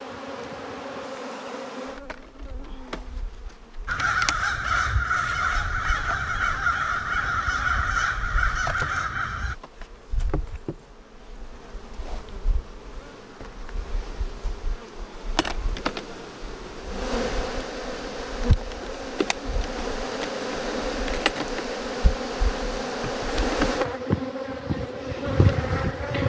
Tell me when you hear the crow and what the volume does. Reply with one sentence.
The crow can be heard from 3.9 to 9.6 s, at a steady volume.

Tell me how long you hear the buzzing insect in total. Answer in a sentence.
The buzzing insect can be heard for 26 seconds in total.